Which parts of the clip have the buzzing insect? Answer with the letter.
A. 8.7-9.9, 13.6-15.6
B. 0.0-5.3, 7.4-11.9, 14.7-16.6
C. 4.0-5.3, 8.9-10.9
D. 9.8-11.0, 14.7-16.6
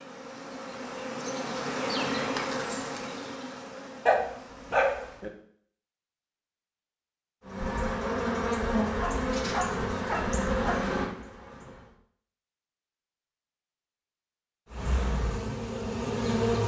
B.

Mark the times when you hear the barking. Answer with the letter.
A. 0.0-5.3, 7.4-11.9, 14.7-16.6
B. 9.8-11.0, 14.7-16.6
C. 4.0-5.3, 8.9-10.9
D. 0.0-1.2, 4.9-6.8
C.